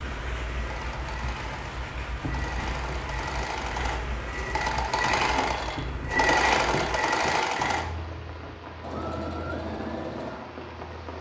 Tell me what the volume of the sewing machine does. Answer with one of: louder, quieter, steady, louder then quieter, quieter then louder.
louder then quieter.